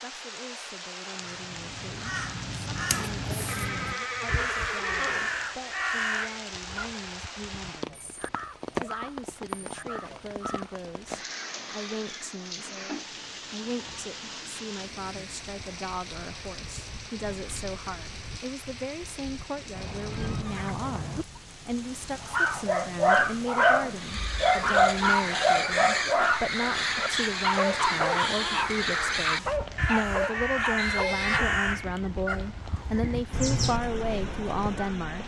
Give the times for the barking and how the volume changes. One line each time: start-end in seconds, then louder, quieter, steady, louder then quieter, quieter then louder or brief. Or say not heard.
22.2-31.3 quieter.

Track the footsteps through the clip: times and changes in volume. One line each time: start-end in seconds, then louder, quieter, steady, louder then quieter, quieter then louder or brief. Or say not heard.
not heard.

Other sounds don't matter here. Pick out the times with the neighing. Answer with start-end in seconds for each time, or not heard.
3.5-5.5, 19.8-21.2, 30.8-31.4.